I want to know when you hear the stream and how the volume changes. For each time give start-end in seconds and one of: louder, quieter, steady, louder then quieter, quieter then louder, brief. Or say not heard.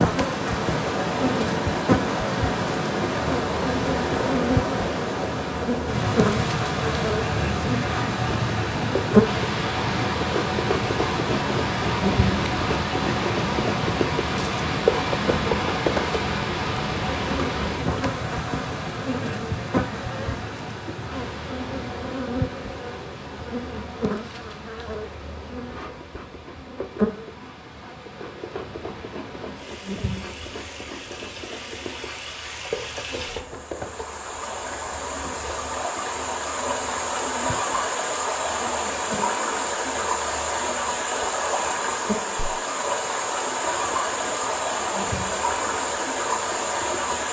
0.0-47.2 quieter then louder.